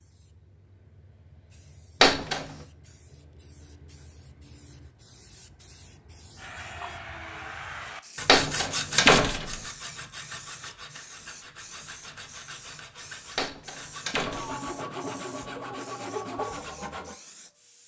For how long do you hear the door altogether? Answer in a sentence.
You can hear the door for 3 seconds altogether.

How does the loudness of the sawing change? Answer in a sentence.
The loudness of the sawing goes down, then up.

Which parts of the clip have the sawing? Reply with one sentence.
The sawing can be heard from 6.3 to 17.1 s.